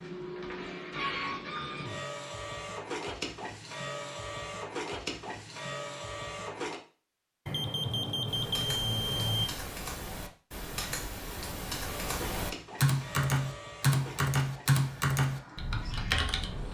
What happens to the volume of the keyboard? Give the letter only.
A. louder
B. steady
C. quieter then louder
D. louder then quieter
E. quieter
A.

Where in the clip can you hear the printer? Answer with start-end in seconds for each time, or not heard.
0.0-6.8, 11.8-16.6.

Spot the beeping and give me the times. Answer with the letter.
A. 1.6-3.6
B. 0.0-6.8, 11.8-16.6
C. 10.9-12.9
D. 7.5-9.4
D.